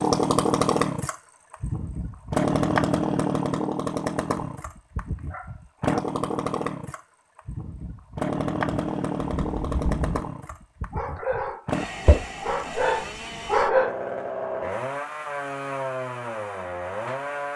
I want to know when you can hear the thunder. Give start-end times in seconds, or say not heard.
8.8-10.2.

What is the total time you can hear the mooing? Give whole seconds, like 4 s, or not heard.
not heard.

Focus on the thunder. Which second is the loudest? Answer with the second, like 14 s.
10 s.